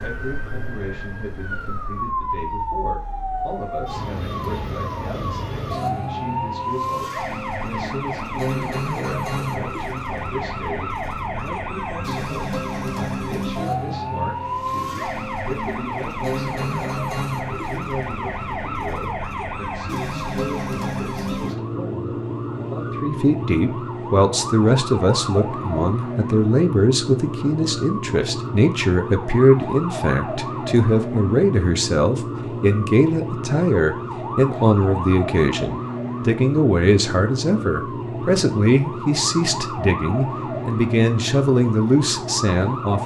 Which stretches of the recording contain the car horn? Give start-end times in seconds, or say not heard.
not heard.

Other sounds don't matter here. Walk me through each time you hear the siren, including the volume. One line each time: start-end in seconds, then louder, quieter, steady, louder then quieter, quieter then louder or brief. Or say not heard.
0.0-43.0 steady.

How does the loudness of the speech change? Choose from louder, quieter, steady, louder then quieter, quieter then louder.
louder.